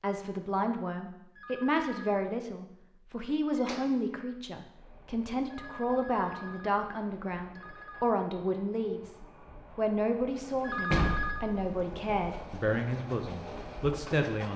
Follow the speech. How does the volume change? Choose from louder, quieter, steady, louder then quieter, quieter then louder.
steady.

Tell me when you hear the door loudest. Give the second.
11 s.